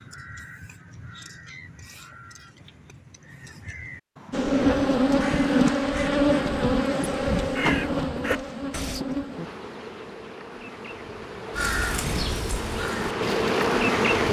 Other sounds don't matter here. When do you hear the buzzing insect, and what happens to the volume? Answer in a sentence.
The buzzing insect can be heard from 4.3 to 14.2 s, getting quieter then louder.